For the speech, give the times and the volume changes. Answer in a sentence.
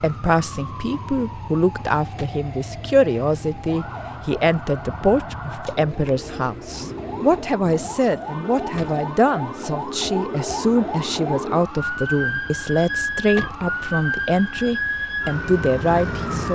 The speech can be heard from 0.0 to 16.5 s, at a steady volume.